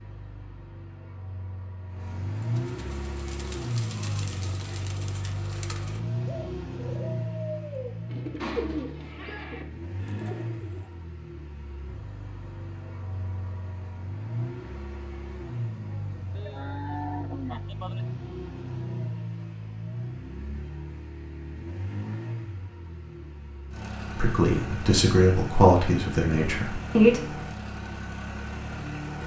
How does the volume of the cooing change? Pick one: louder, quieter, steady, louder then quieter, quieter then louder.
louder then quieter.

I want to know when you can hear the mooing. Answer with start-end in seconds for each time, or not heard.
16.4-18.1.